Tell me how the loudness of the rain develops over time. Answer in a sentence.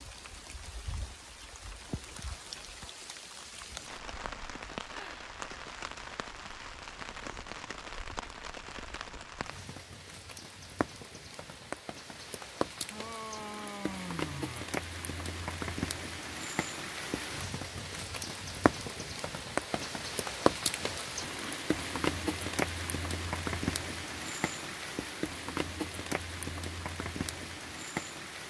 The volume of the rain goes up.